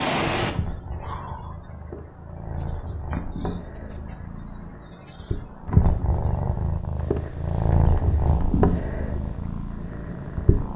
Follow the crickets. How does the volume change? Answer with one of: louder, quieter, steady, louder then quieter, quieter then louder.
steady.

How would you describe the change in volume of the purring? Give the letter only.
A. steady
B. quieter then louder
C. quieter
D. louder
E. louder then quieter
D.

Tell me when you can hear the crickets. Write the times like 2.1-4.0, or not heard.
0.0-6.8.